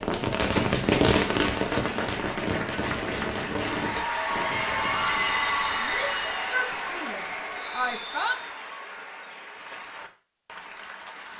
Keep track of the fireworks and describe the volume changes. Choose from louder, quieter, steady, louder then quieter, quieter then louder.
quieter.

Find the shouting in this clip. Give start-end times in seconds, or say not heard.
5.8-8.4.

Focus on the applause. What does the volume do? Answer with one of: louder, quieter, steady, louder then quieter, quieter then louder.
louder then quieter.